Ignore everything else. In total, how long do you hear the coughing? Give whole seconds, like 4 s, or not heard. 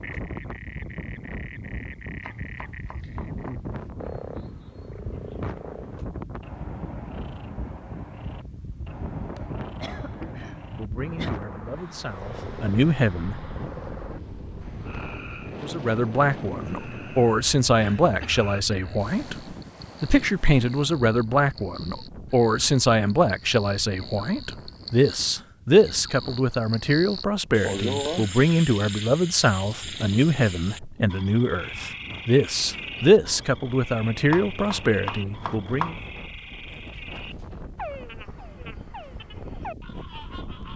4 s.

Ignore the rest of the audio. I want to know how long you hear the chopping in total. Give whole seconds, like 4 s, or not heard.
3 s.